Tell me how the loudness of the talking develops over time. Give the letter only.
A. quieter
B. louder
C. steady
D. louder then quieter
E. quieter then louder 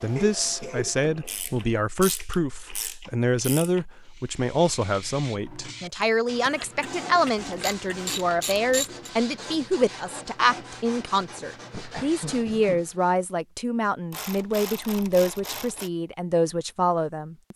C.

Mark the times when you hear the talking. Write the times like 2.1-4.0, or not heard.
0.0-17.5.